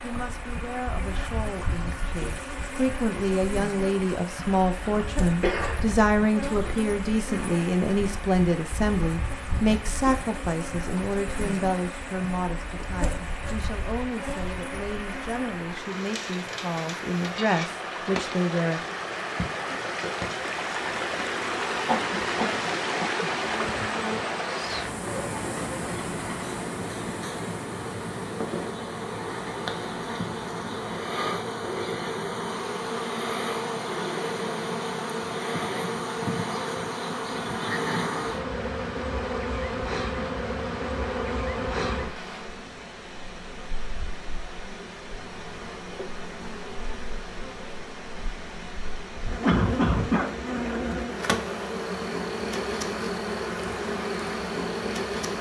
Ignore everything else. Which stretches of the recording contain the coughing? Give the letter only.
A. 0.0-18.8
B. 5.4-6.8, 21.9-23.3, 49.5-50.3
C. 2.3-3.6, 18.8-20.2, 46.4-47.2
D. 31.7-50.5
B.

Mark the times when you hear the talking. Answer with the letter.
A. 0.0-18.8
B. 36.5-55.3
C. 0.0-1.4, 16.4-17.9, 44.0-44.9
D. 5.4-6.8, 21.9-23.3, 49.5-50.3
A.